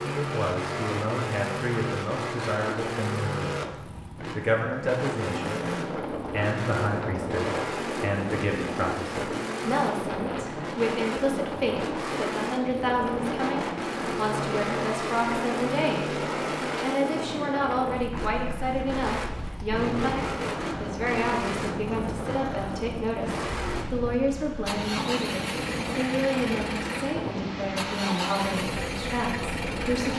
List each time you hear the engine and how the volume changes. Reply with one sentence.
You can hear the engine from 0.0 to 30.1 s, at a steady volume.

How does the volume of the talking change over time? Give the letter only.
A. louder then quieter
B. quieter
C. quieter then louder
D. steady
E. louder
D.